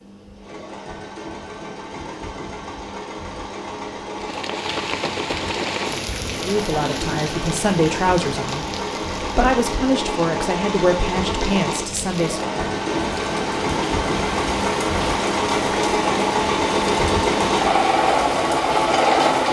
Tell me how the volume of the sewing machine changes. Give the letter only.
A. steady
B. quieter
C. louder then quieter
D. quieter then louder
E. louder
E.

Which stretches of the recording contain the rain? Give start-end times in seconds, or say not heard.
4.2-19.4.